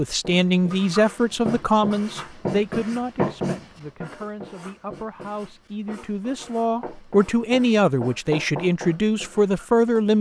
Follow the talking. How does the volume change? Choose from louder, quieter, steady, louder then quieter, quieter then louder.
quieter then louder.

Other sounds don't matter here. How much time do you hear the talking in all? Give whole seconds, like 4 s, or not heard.
10 s.